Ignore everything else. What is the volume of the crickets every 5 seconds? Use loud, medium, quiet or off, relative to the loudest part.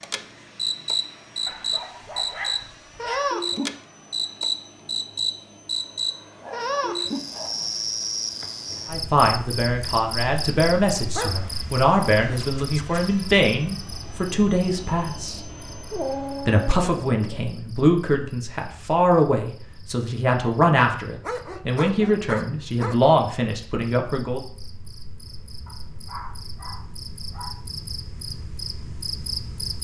loud, loud, medium, quiet, quiet, medium.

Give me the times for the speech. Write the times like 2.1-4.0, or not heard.
8.8-15.4, 16.4-24.4.